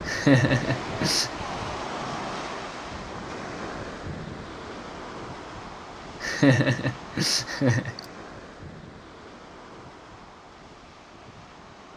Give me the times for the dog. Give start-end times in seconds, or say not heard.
not heard.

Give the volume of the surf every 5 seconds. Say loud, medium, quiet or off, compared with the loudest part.
loud, medium, quiet.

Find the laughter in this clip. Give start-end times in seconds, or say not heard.
0.1-1.3, 6.2-8.0.